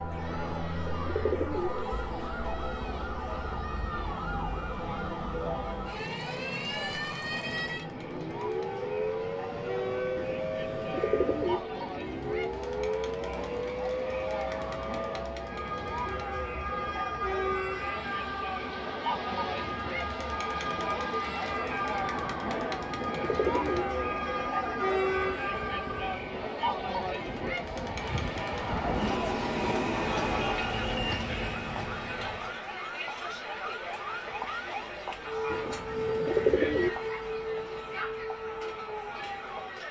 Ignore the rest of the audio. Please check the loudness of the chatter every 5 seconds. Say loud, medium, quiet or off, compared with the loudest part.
medium, medium, medium, loud, loud, loud, loud, medium.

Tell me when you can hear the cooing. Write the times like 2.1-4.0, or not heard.
0.2-1.7, 10.2-11.6, 22.4-23.9, 35.5-36.9.